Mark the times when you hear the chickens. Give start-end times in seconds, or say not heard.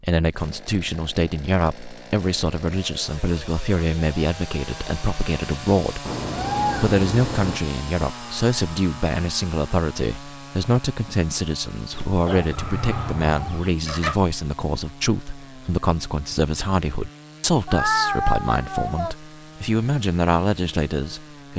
11.9-14.2.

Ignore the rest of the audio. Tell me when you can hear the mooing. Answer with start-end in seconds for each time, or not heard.
not heard.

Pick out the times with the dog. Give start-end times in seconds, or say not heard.
not heard.